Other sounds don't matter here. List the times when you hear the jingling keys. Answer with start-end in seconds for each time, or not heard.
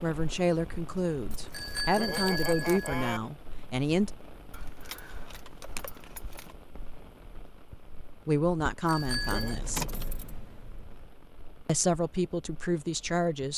1.3-2.9, 4.5-6.5, 9.1-11.1.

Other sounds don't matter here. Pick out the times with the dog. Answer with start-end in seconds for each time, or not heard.
not heard.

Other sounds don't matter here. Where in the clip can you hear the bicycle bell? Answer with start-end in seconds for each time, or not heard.
1.5-3.2, 8.8-9.6.